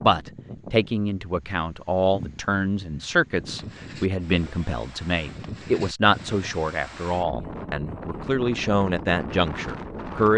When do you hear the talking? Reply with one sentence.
The talking can be heard from 0.0 to 10.3 s.